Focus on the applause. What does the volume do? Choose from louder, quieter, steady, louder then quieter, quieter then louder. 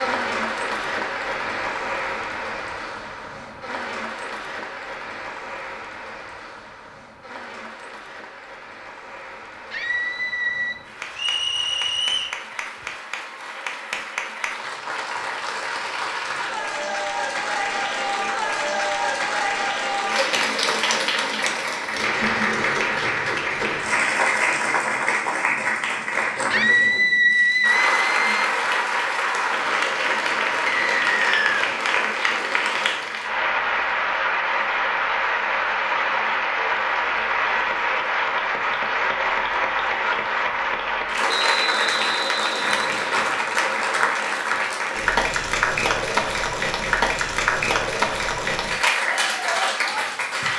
louder.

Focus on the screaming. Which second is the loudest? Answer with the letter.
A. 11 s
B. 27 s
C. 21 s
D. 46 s
B.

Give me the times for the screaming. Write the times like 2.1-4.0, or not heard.
9.7-10.8, 26.5-28.5.